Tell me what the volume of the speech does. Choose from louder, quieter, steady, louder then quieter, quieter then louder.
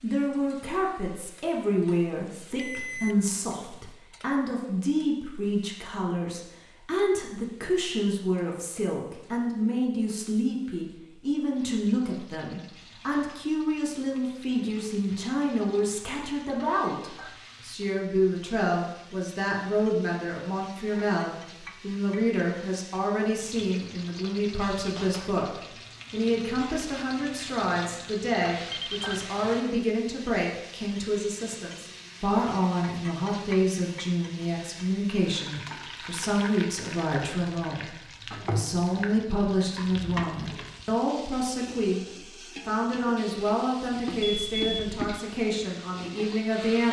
steady.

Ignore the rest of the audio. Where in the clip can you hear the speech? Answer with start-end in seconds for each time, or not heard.
0.0-46.8.